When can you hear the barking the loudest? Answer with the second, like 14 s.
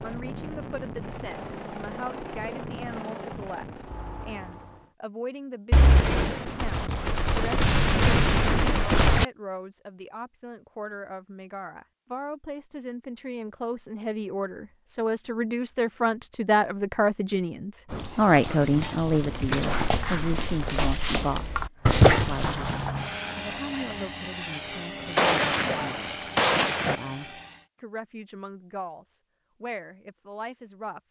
22 s.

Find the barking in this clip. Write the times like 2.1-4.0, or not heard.
17.9-22.9.